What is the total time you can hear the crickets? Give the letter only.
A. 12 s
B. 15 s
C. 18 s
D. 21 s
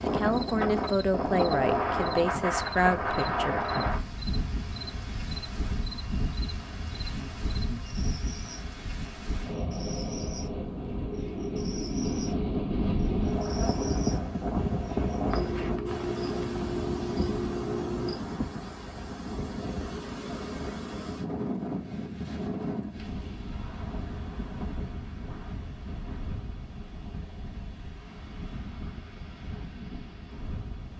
C.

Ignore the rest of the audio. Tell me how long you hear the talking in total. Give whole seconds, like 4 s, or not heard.
4 s.